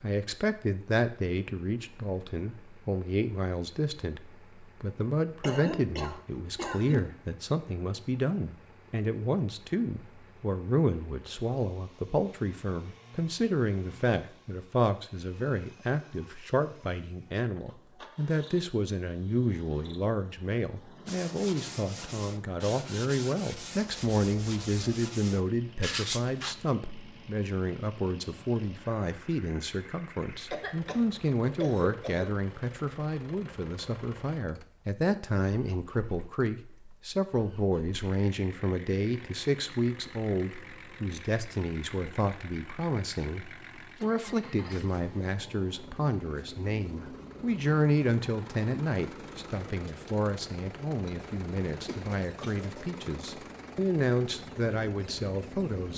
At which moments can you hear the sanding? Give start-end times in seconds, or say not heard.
21.1-26.6.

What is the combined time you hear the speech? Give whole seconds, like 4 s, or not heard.
56 s.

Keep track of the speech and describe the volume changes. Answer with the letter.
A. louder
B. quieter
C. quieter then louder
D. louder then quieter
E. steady
E.